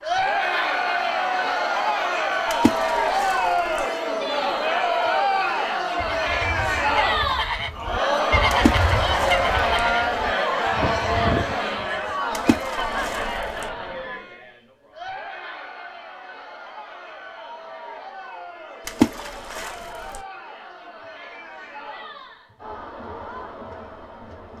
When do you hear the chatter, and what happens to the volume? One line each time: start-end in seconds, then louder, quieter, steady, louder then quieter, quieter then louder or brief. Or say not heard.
0.0-24.5 quieter.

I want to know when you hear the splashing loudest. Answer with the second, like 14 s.
19 s.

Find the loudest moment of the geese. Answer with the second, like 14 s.
8 s.